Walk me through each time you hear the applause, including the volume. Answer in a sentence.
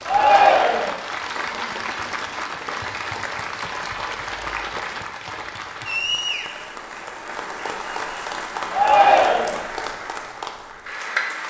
The applause can be heard from 0.0 to 11.4 s, at a steady volume.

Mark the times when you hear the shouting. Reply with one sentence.
The shouting can be heard from 0.1 to 0.9 s and from 8.7 to 9.6 s.